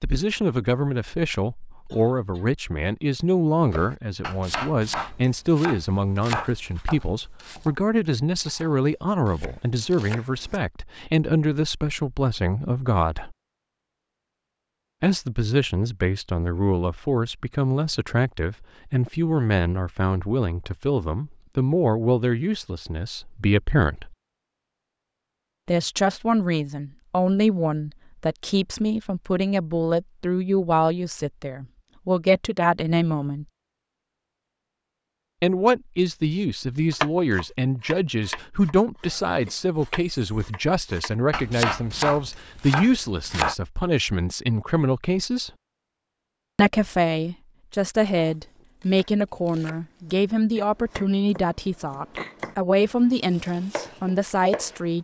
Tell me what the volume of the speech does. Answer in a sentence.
The volume of the speech stays about the same.